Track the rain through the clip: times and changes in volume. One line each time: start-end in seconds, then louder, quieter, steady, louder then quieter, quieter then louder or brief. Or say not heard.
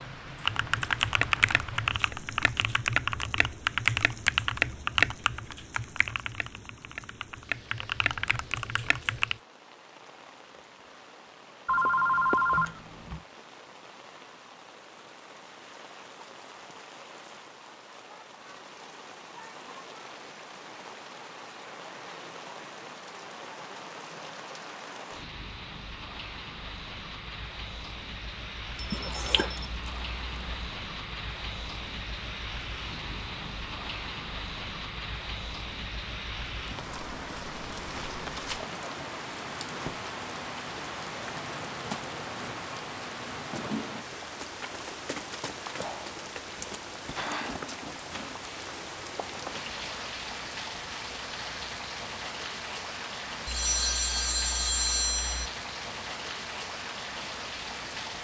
0.0-58.1 louder.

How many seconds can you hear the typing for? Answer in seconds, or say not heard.
9 s.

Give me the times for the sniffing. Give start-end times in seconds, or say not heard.
28.9-29.6.